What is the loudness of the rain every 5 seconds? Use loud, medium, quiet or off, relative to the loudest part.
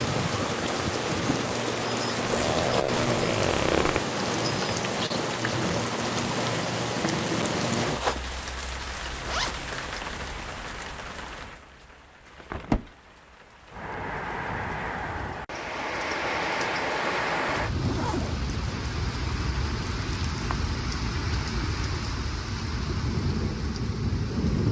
loud, loud, medium, loud, loud.